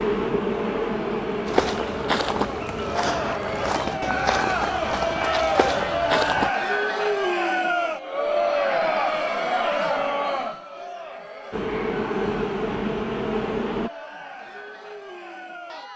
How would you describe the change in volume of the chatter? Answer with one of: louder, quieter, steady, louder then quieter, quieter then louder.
louder then quieter.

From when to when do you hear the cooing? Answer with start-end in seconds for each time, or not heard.
not heard.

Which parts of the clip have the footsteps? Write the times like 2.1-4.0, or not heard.
1.4-6.5.